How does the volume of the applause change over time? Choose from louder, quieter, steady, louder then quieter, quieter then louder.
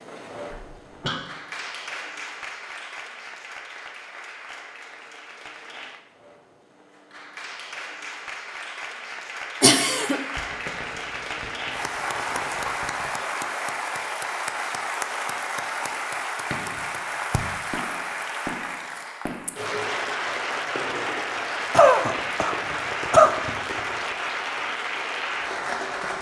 louder.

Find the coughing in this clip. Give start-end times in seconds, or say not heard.
0.5-1.2, 9.6-10.2, 21.7-23.4.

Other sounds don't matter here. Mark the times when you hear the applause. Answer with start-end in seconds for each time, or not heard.
0.0-26.1.